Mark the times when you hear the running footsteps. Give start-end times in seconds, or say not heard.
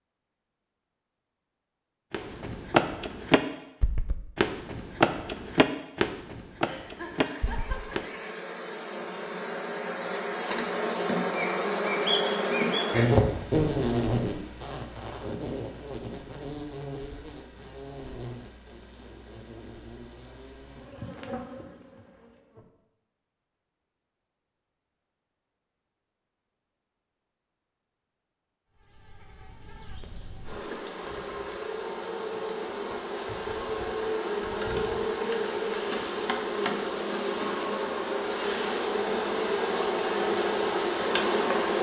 2.1-8.1.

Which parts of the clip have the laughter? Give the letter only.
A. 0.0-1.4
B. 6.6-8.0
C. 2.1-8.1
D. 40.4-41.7
B.